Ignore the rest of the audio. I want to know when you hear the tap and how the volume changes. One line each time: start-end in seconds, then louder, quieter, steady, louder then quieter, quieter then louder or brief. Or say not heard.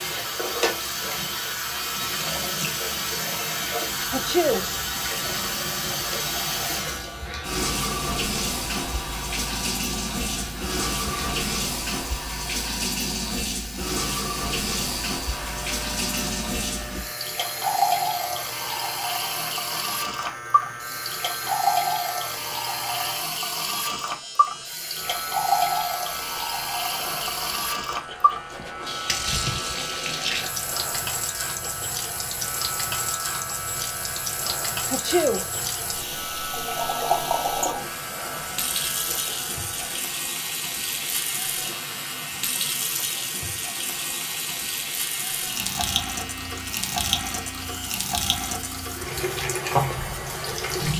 0.0-50.9 steady.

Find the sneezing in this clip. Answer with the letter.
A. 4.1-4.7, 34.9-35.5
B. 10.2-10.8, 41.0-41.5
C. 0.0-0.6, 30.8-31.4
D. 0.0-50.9
A.